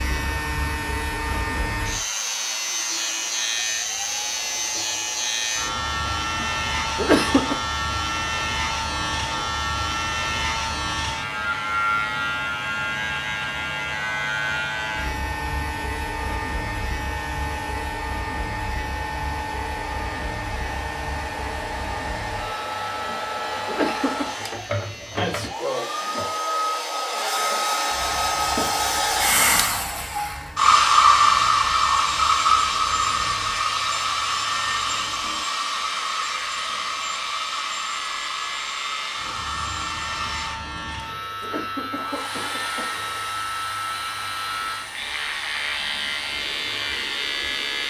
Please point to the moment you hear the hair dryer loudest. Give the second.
31 s.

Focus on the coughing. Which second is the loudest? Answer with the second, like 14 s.
7 s.